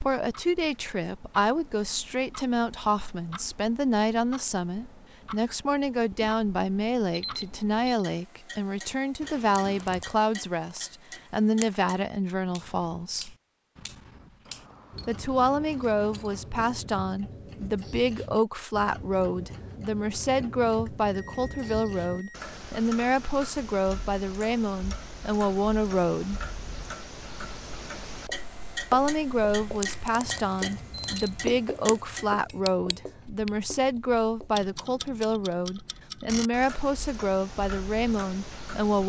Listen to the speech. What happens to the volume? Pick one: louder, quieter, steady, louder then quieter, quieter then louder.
steady.